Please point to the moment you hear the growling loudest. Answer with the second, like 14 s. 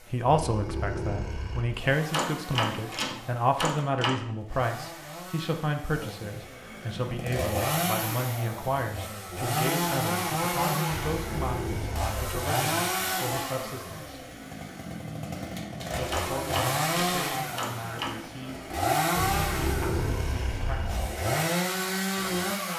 20 s.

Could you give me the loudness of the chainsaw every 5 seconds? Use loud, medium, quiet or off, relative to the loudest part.
quiet, loud, loud, loud, loud.